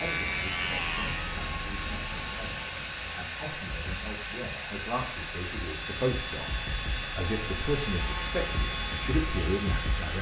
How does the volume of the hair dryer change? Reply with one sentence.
The loudness of the hair dryer stays about the same.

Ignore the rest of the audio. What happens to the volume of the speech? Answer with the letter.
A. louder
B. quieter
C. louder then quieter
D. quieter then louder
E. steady
A.